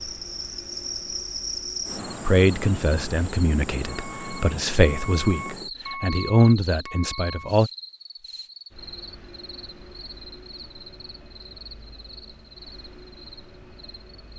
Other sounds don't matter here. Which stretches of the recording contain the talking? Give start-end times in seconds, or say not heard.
2.2-7.7.